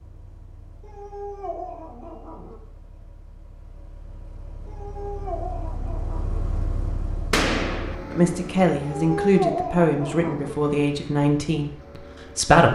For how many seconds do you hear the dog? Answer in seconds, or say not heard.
5 s.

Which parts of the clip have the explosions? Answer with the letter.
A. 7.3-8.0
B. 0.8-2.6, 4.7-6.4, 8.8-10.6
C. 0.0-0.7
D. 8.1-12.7
A.